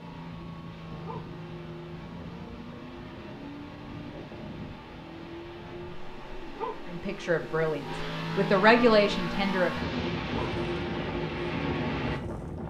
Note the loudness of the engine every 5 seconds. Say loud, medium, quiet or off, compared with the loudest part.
medium, loud, loud.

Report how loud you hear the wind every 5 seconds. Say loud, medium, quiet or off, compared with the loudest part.
medium, medium, loud.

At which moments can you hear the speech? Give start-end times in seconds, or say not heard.
6.9-9.8.